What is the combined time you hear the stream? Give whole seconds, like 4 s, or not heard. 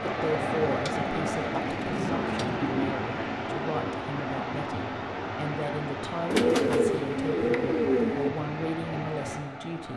10 s.